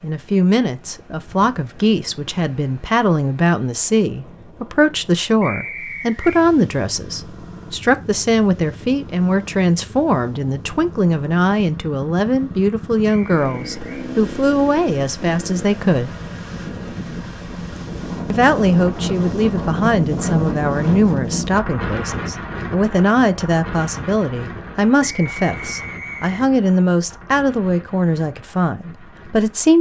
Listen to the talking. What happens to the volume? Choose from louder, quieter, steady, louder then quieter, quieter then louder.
steady.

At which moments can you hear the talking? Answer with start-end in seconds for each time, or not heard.
0.0-16.1, 18.3-29.7.